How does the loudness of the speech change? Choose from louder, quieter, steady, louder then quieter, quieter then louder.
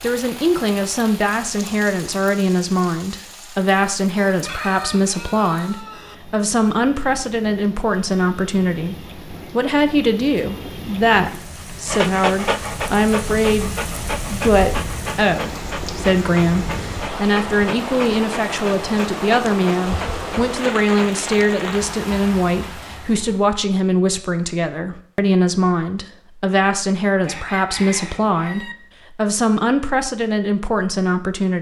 steady.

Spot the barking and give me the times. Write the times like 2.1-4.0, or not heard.
11.8-21.6.